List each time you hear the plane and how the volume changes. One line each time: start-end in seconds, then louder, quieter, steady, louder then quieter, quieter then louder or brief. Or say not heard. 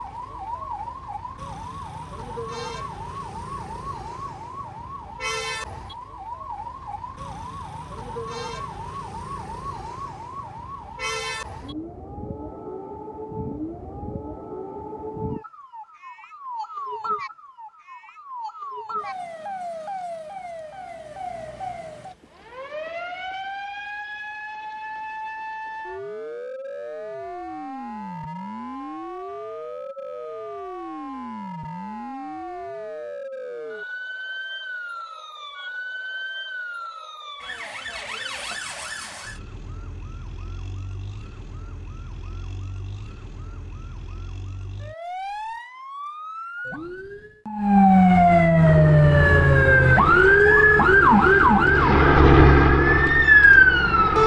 48.6-54.2 louder then quieter.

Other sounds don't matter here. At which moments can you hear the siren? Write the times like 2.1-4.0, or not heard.
0.0-54.2.